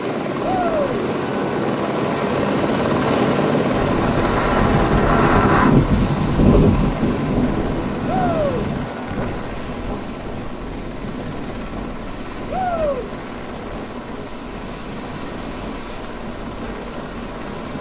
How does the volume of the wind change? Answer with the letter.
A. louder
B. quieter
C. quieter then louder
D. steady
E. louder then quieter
E.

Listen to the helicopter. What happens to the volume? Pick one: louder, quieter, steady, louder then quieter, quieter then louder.
quieter.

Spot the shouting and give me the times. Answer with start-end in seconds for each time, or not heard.
0.4-0.9, 8.1-8.7, 12.5-13.1.